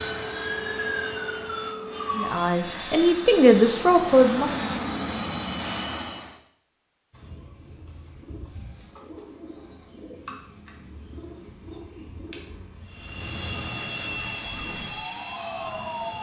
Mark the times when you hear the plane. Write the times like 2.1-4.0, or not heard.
0.0-6.4, 12.8-16.1.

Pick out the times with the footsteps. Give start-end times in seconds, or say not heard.
not heard.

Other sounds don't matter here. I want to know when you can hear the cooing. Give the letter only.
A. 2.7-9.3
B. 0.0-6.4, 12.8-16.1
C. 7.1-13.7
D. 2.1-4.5
C.